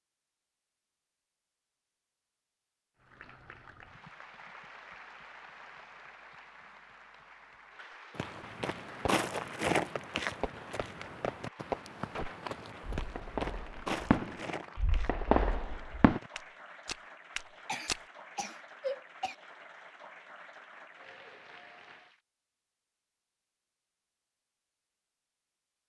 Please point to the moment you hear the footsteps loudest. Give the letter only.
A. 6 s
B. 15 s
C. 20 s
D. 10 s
D.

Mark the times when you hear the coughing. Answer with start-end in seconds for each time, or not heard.
17.6-19.4.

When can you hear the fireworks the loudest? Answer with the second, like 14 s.
15 s.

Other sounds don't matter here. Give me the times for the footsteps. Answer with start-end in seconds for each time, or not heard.
8.2-18.0.